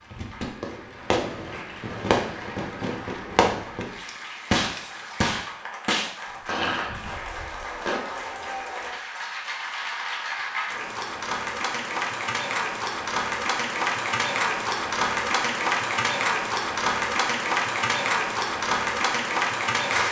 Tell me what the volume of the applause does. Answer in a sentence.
The loudness of the applause goes up.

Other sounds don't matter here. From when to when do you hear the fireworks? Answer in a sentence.
The fireworks can be heard from 0.6 to 8.0 s.